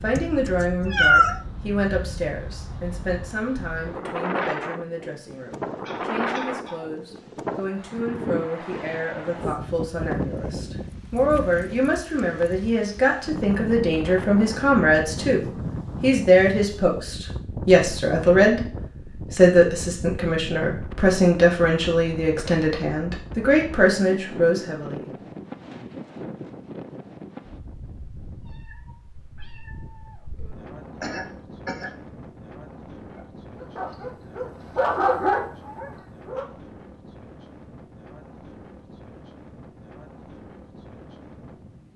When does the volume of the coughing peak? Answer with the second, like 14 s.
31 s.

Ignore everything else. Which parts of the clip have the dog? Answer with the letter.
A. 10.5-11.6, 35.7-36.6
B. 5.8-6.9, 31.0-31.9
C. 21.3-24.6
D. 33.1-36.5
D.